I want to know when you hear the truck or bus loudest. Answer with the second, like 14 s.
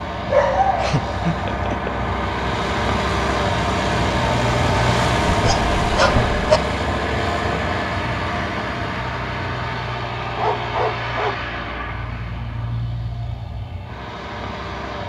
5 s.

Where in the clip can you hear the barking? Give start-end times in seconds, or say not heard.
0.2-1.9, 5.2-6.6, 10.3-11.4.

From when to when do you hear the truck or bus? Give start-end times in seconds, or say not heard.
0.0-15.0.